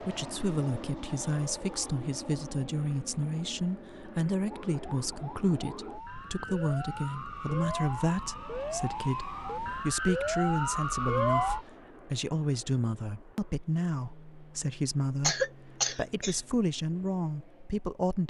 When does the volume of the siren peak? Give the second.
11 s.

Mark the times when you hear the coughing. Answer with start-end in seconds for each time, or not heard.
15.2-16.4.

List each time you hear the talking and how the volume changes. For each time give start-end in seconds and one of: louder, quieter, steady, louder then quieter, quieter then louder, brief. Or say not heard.
0.0-18.2 steady.